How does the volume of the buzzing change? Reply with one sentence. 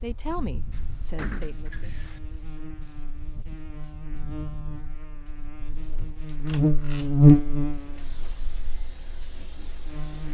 The volume of the buzzing goes up, then down.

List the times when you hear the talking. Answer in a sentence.
You can hear the talking from 0.0 to 1.9 s.